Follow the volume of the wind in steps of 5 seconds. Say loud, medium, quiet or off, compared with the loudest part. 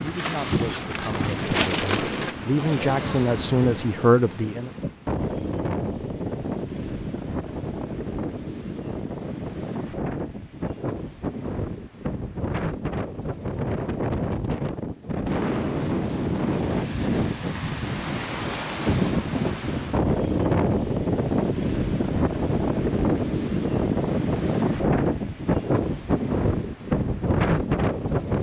medium, medium, medium, loud, loud, loud.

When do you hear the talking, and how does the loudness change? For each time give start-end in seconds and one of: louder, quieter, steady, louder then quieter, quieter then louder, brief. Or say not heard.
0.0-4.7 louder.